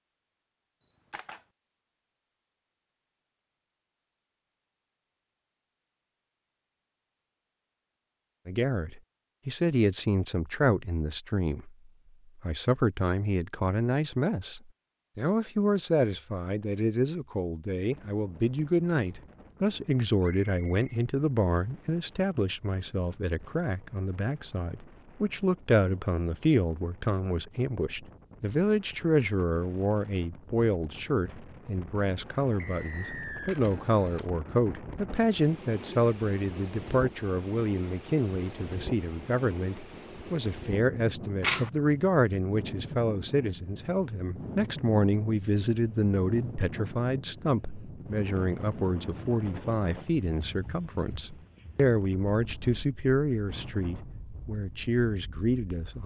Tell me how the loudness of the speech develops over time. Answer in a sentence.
The volume of the speech stays about the same.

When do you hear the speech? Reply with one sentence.
You can hear the speech from 8.4 to 11.8 s and from 12.3 to 56.0 s.